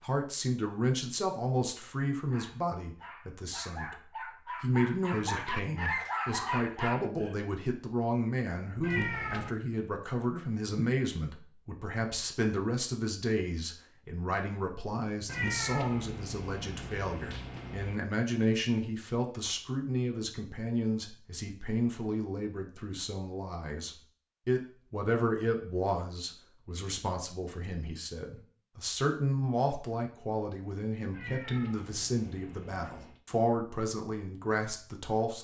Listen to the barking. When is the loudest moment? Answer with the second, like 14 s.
6 s.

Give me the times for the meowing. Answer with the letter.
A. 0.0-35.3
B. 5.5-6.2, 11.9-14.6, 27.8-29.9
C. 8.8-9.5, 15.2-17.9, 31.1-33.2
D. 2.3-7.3
C.